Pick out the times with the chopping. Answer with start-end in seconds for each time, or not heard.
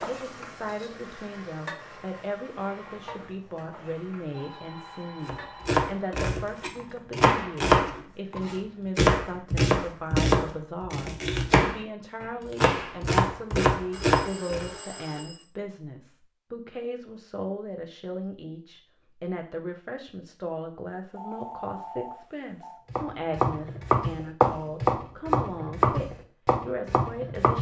5.2-14.7, 22.9-27.5.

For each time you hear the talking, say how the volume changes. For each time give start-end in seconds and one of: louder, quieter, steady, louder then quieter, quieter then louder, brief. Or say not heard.
0.1-27.5 steady.